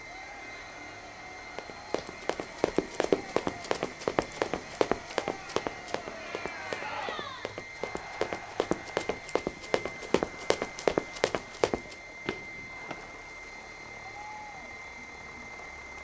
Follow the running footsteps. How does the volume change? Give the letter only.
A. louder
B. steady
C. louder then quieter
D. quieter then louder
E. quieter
D.